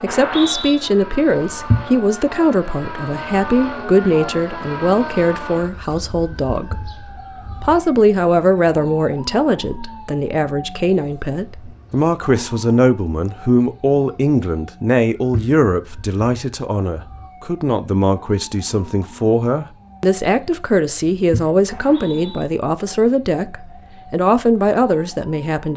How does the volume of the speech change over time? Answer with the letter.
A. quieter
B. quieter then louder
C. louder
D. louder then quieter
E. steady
E.